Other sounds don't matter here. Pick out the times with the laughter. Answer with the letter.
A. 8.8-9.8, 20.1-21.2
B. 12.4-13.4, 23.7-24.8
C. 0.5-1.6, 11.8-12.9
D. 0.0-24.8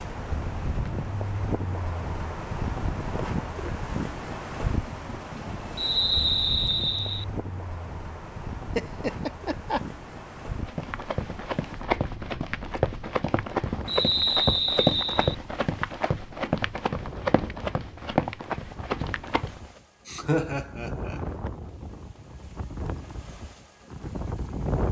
A.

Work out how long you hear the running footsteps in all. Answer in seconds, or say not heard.
9 s.